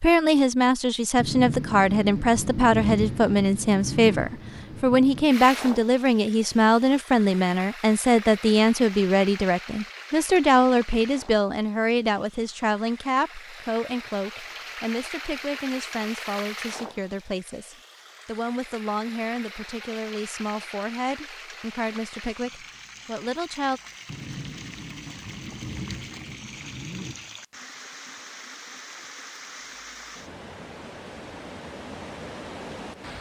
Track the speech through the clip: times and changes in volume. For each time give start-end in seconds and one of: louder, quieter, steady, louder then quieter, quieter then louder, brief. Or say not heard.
0.0-23.8 quieter.